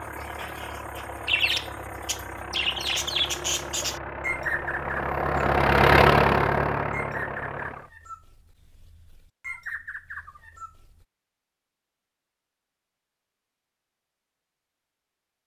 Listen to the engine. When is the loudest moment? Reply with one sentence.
The loudest moment of the engine is at 6 seconds.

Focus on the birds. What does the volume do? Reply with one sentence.
The volume of the birds goes down, then up.